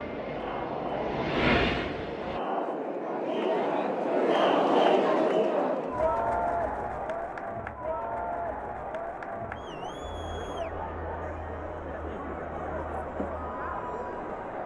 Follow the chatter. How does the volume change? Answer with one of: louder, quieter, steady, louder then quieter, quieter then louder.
louder then quieter.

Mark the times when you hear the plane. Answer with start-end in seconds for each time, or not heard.
0.0-2.4.